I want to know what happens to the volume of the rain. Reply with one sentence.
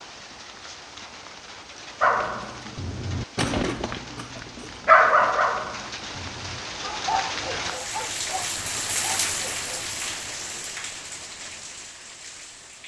The loudness of the rain goes up, then down.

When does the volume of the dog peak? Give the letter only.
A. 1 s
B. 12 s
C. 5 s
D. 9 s
C.